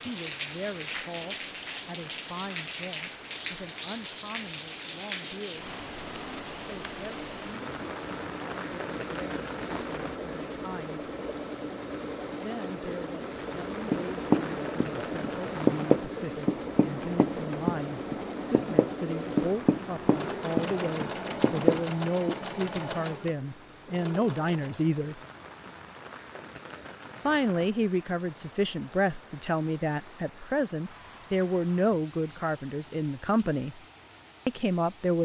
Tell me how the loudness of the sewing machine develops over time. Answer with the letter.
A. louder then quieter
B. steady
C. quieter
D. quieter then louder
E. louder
E.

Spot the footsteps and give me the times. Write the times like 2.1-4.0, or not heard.
not heard.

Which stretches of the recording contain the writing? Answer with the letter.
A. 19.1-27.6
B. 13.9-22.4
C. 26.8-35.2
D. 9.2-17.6
B.